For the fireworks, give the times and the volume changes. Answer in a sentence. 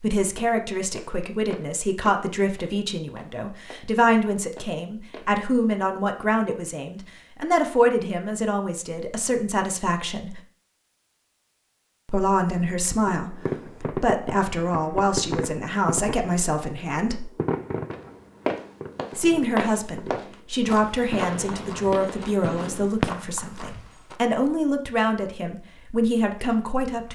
You can hear the fireworks from 13.1 to 23.1 s, getting quieter then louder.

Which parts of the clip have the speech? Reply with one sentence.
You can hear the speech from 0.0 to 10.4 s, from 12.1 to 17.3 s and from 19.1 to 27.1 s.